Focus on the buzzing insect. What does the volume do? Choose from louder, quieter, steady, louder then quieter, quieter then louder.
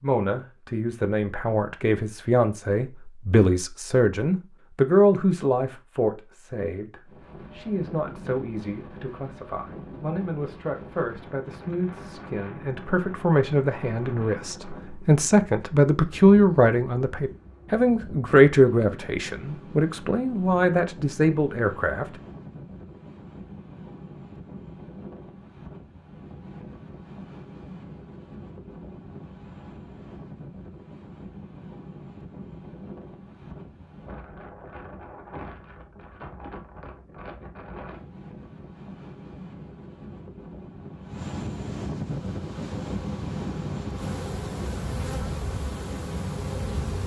louder.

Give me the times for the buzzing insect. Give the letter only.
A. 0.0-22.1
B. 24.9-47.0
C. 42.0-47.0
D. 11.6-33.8
C.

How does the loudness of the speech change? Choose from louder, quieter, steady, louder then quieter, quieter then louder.
quieter then louder.